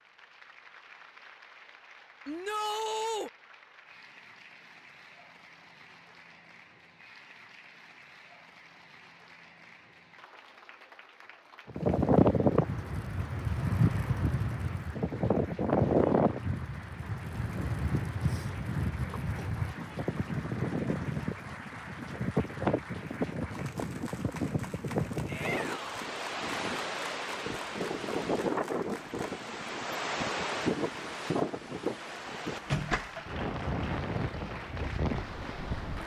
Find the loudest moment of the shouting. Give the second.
3 s.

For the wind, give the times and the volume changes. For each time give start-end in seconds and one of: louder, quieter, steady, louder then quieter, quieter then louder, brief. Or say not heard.
11.7-36.0 quieter.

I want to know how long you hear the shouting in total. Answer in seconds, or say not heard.
2 s.